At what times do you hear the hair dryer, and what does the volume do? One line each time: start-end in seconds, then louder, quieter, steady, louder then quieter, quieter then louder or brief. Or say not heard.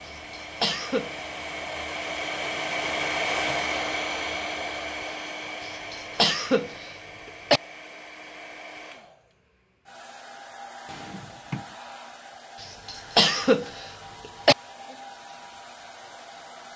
0.0-16.7 quieter.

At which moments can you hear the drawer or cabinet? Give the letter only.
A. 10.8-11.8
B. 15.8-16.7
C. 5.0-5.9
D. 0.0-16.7
A.